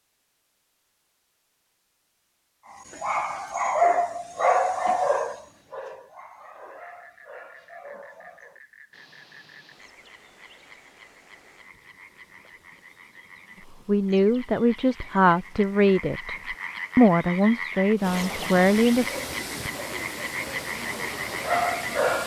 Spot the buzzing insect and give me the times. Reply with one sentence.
The buzzing insect can't be heard in this clip.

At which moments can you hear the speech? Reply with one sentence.
You can hear the speech from 13.8 to 19.1 s.